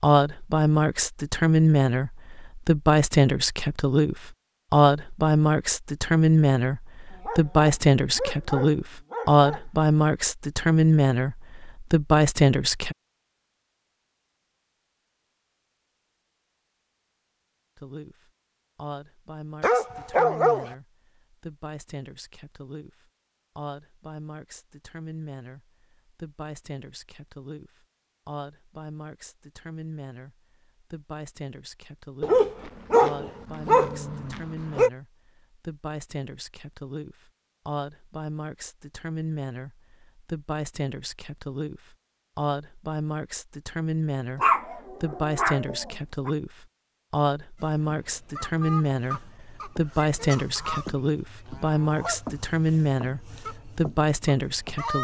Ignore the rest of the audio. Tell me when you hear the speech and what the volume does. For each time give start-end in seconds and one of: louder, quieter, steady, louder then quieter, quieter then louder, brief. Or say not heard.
0.0-12.9 steady
17.8-54.9 louder.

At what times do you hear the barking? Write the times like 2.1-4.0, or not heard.
7.1-9.7, 19.6-20.8, 32.2-34.9, 44.4-46.3.